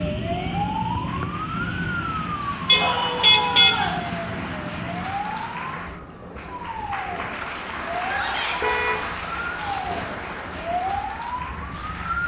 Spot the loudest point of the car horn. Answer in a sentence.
The volume of the car horn peaks at 3 seconds.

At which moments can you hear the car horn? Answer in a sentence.
You can hear the car horn from 2.6 to 3.9 s and from 8.6 to 9.1 s.